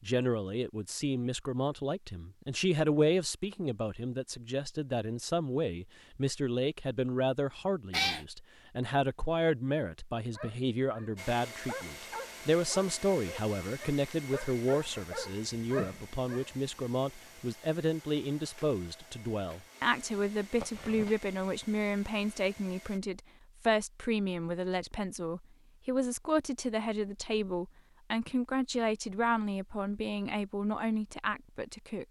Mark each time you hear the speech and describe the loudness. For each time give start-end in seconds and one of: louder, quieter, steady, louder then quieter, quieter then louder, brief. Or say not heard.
0.0-32.0 steady.